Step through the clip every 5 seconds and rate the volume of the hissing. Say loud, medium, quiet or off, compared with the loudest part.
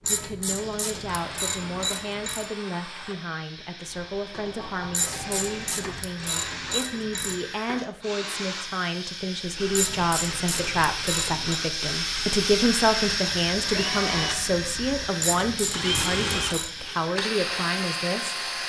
quiet, medium, loud, medium.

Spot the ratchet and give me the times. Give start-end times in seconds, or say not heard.
0.1-2.5, 4.9-7.4, 9.7-11.6, 15.2-16.7.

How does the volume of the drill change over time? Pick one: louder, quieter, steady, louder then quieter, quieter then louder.
louder.